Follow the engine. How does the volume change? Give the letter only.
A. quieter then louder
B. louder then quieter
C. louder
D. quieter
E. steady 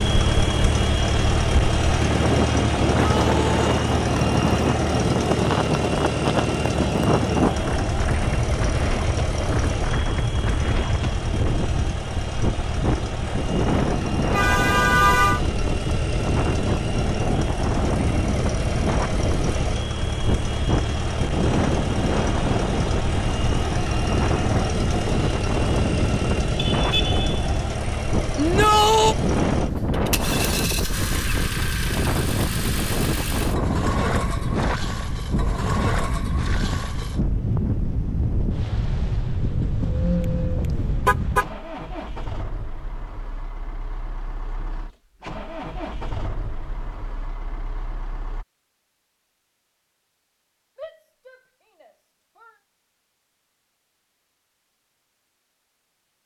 D.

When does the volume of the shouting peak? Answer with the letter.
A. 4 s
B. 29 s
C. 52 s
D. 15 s
B.